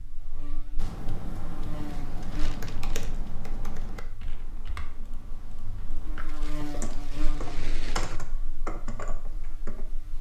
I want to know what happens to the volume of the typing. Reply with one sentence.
The volume of the typing goes down, then up.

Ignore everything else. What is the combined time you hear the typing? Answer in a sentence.
The typing can be heard for 9 seconds in total.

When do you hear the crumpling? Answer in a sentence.
You can hear the crumpling from 2.3 to 3.1 s and from 6.2 to 8.2 s.